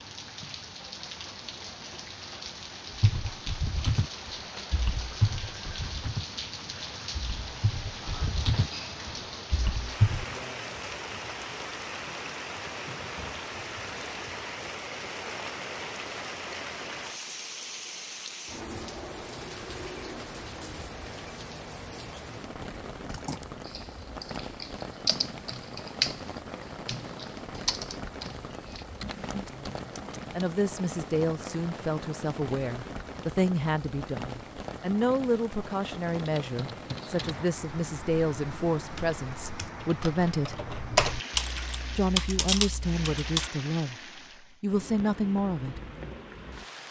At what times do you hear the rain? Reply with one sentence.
The rain can be heard from 0.0 to 46.8 s.